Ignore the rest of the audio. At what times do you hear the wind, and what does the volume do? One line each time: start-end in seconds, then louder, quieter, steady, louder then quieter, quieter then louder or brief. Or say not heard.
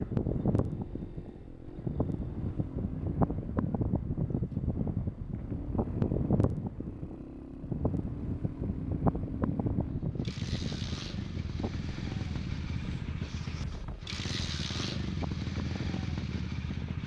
0.0-17.0 quieter.